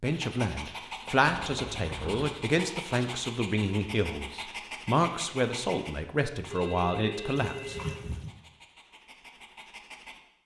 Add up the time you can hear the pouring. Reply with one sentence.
You can hear the pouring for 2 seconds altogether.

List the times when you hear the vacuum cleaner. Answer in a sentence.
You can't hear the vacuum cleaner here.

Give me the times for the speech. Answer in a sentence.
The speech can be heard from 0.0 to 7.8 s.